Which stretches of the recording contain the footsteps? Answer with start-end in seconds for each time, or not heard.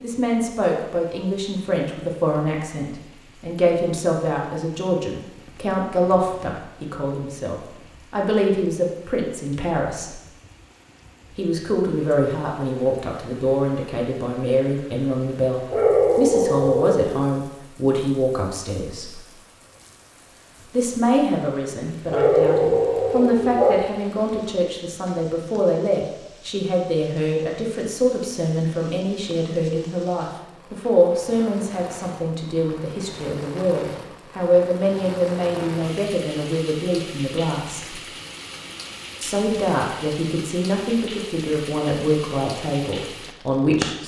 not heard.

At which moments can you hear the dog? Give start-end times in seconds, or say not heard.
15.7-17.2, 22.1-23.8.